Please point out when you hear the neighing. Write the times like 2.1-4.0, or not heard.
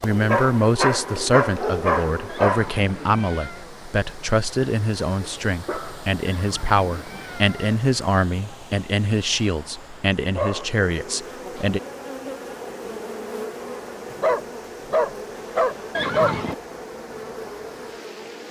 2.2-3.7, 6.2-7.8, 15.9-16.6.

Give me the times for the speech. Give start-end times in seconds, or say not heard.
0.0-11.8.